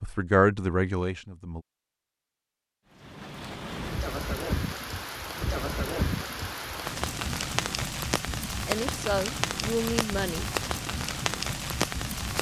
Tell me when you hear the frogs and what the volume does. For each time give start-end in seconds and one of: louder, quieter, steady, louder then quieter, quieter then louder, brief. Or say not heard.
not heard.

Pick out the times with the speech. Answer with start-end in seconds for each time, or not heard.
0.0-1.6, 8.7-10.5.